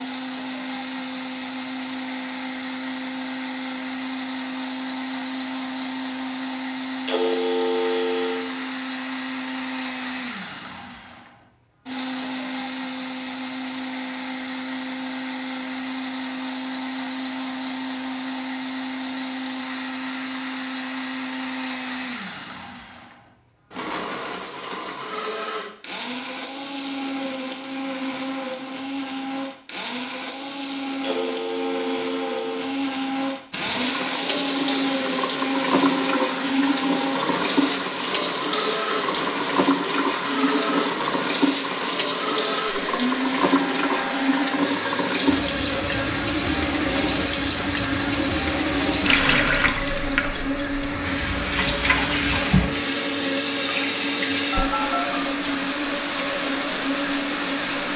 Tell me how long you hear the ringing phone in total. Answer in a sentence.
You can hear the ringing phone for 6 seconds altogether.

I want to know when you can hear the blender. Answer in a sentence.
The blender can be heard from 0.0 to 57.9 s.